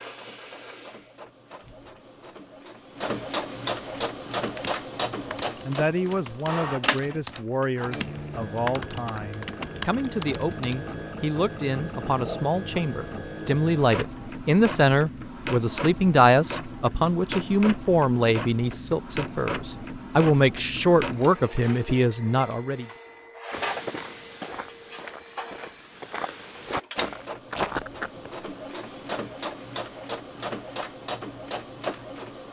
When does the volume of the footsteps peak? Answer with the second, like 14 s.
28 s.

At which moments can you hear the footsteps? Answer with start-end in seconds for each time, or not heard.
23.5-28.3.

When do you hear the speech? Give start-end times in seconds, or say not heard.
5.2-22.9.